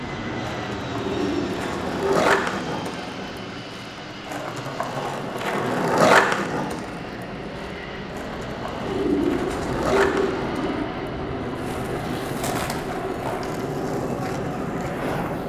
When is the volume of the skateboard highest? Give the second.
6 s.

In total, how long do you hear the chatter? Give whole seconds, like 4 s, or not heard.
not heard.